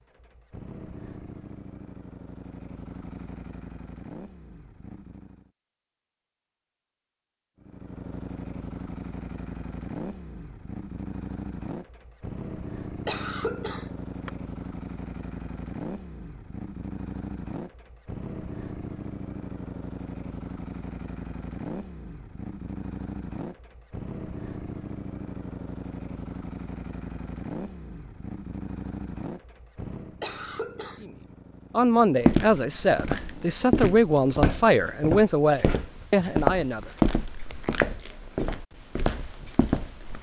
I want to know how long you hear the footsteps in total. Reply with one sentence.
The footsteps can be heard for 8 seconds in total.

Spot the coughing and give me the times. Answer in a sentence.
You can hear the coughing from 13.1 to 14.3 s and from 30.2 to 31.1 s.